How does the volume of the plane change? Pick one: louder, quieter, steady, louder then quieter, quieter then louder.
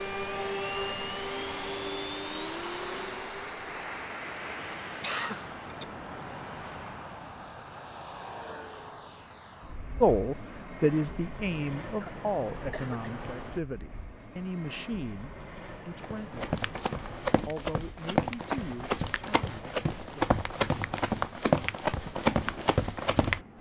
quieter.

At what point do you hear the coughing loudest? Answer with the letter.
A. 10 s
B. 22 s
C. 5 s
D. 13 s
C.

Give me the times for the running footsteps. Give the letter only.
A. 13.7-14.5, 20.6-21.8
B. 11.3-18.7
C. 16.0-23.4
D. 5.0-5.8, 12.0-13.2
C.